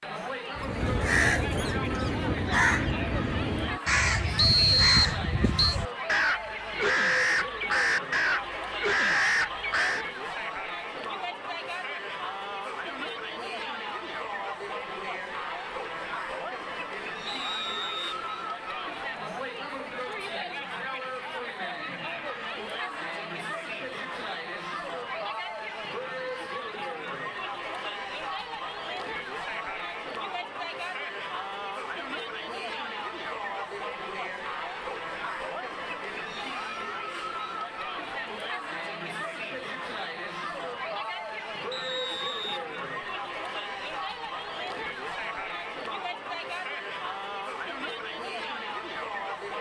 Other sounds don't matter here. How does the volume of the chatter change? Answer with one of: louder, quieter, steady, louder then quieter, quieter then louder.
steady.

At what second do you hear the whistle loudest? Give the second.
5 s.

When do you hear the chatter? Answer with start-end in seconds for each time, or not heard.
0.0-49.5.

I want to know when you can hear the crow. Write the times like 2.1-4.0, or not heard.
0.6-10.1.